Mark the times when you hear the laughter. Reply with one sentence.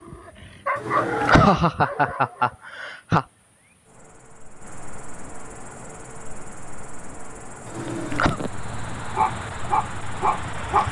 The laughter can be heard from 0.8 to 3.2 s and from 7.7 to 8.4 s.